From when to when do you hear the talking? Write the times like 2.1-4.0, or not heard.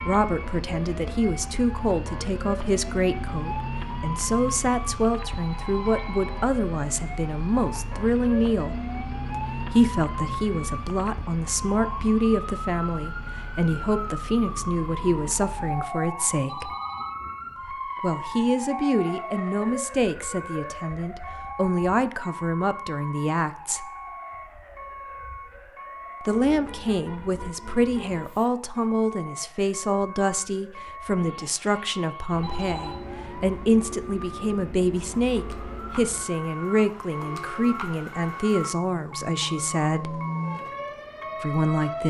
0.0-16.8, 18.0-23.9, 26.2-40.2, 41.4-42.0.